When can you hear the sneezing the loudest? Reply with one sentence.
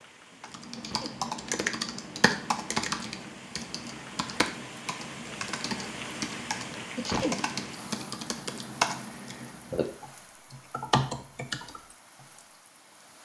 The volume of the sneezing peaks at 7 seconds.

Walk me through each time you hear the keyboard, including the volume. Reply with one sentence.
You can hear the keyboard from 0.4 to 12.2 s, getting quieter then louder.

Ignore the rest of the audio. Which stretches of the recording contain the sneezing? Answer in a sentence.
You can hear the sneezing from 0.8 to 1.2 s and from 7.0 to 7.5 s.